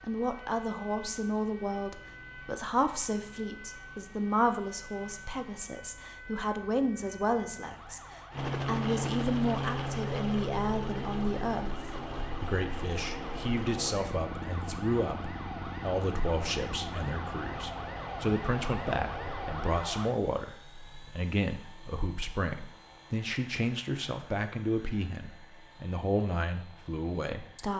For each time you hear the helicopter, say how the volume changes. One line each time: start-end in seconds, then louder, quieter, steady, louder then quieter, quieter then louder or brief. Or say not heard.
8.3-27.7 quieter.